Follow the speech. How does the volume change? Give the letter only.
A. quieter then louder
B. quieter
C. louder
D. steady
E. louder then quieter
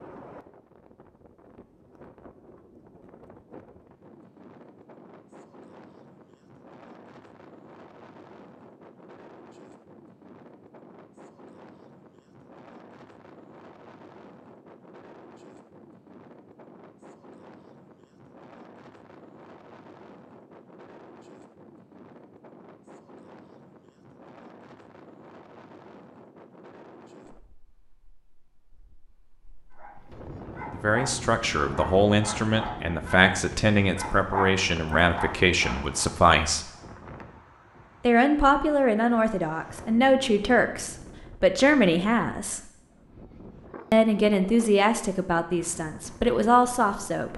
D.